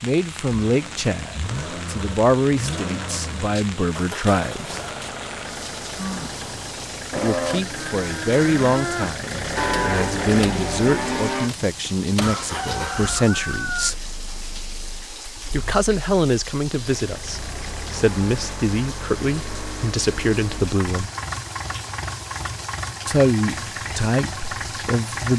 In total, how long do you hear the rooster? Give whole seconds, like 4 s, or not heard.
2 s.